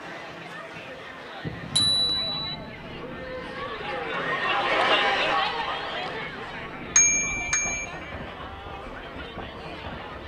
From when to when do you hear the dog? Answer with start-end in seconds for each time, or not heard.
not heard.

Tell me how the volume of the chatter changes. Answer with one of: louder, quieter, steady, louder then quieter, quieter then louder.
louder then quieter.